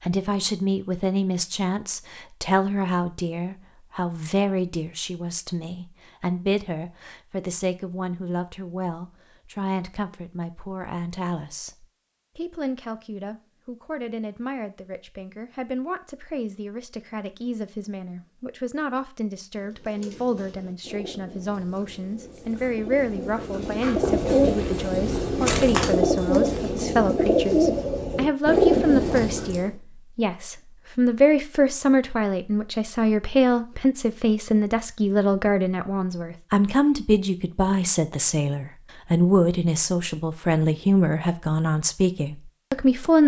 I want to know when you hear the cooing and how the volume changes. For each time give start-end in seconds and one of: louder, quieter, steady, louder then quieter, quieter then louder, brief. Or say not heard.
19.6-29.7 louder.